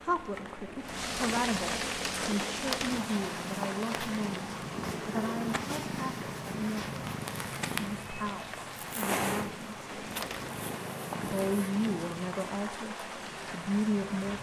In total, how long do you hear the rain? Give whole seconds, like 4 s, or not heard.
14 s.